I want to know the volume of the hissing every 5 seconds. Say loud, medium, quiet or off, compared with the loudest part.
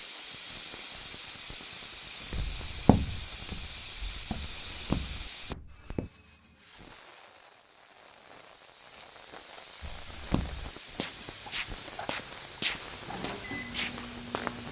loud, medium, loud.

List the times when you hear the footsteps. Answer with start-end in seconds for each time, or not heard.
2.3-6.1, 9.8-14.6.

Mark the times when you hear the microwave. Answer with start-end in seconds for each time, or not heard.
13.0-14.6.